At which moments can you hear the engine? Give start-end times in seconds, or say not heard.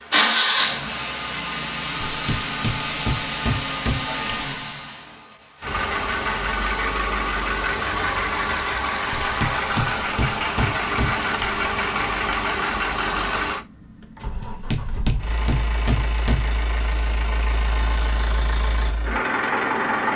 0.0-20.1.